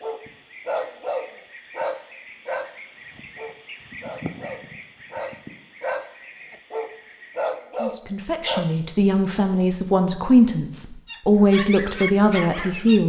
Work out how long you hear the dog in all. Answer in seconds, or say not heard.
11 s.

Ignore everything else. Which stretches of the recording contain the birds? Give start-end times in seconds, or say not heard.
0.0-7.7.